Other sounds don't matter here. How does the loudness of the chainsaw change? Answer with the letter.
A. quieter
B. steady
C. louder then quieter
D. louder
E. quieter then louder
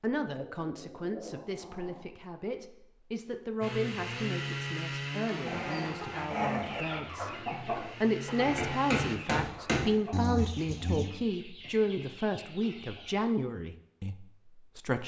E.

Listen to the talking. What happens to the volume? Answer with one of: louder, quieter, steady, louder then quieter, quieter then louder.
louder.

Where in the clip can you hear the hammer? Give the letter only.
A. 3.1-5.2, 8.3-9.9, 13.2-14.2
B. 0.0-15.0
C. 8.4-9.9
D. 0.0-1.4
C.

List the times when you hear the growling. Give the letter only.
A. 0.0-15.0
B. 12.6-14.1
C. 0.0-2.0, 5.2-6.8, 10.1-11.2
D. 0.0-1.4
C.